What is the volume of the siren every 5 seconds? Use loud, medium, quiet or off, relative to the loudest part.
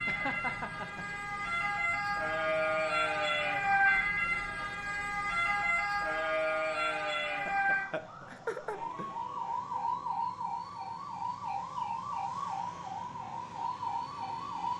loud, loud, medium.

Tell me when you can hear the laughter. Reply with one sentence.
The laughter can be heard from 0.1 to 1.1 s and from 7.5 to 9.2 s.